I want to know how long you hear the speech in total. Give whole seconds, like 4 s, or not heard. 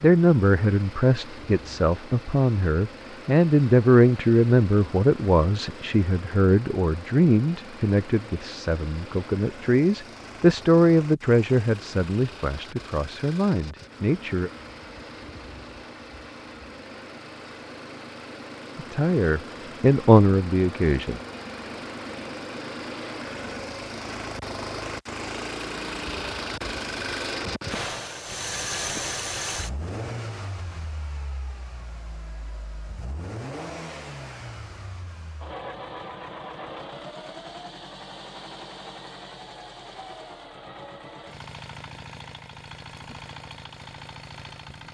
17 s.